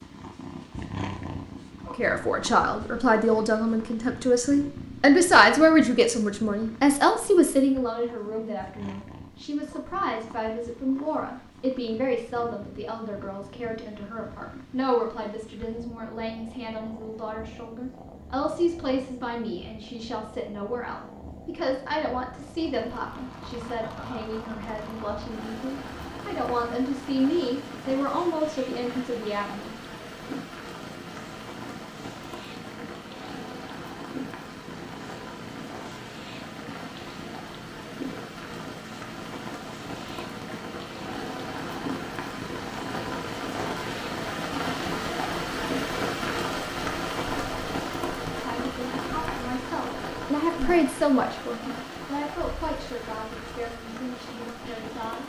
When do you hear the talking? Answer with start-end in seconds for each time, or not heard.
1.9-29.7, 48.2-55.2.